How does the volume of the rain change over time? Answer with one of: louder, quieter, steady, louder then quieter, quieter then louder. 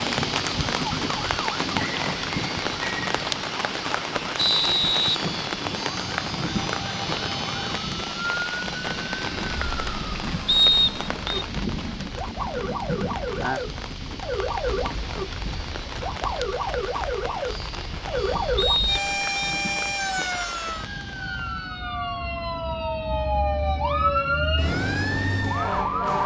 quieter.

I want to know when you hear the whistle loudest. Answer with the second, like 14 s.
11 s.